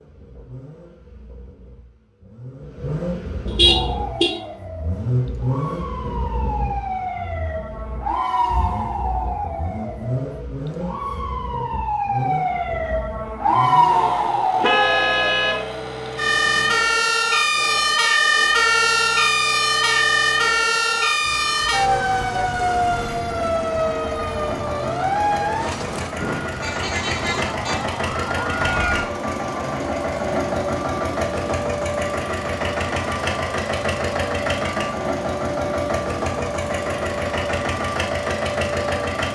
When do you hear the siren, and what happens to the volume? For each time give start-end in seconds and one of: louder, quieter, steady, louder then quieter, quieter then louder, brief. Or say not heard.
3.6-39.3 louder then quieter.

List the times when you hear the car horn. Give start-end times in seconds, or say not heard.
3.5-4.3, 14.6-16.7, 26.4-27.8.